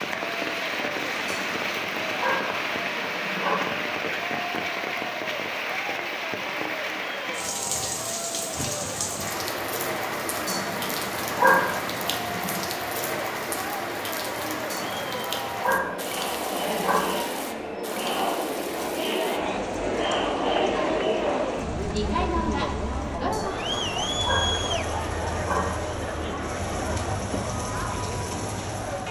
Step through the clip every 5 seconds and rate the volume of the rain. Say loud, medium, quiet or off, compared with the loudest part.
loud, loud, loud, medium, quiet, medium.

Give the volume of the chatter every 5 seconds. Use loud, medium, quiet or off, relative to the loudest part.
medium, medium, medium, loud, loud, medium.